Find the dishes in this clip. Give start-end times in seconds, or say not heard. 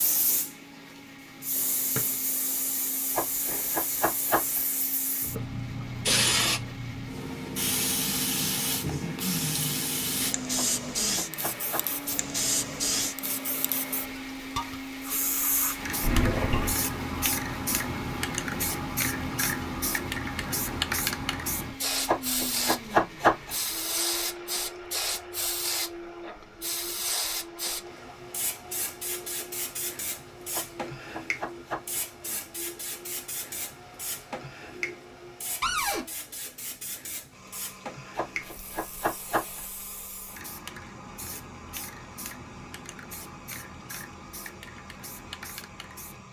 not heard.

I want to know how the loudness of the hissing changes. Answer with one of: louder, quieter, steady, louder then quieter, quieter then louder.
quieter.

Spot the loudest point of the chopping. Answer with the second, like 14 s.
23 s.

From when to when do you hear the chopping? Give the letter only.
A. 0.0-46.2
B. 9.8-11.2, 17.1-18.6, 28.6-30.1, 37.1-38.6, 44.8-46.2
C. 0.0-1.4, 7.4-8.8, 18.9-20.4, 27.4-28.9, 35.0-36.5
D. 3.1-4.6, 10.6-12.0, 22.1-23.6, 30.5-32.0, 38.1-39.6
D.